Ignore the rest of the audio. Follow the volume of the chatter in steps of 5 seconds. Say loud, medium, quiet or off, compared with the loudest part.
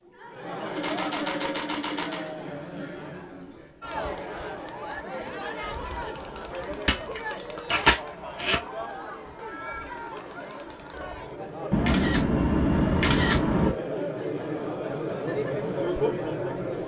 medium, medium, medium, loud.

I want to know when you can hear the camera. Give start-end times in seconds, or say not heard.
0.7-2.3, 6.8-8.6, 11.7-13.8.